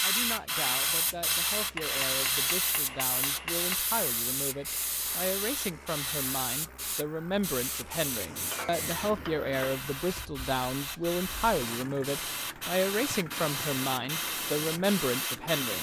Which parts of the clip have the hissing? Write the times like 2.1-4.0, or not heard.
0.0-15.7.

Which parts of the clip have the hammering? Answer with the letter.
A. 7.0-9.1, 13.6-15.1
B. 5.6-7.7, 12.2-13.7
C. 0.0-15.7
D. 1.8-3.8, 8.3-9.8
D.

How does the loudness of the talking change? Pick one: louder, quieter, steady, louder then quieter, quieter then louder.
louder.